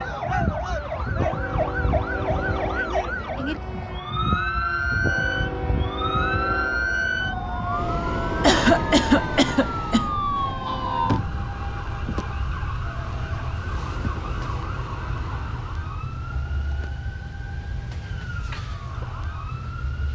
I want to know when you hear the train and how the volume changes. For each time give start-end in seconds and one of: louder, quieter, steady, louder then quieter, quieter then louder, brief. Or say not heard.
0.0-20.1 quieter.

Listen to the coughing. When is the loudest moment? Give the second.
9 s.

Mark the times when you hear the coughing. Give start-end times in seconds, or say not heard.
8.4-10.1.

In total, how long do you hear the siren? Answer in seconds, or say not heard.
20 s.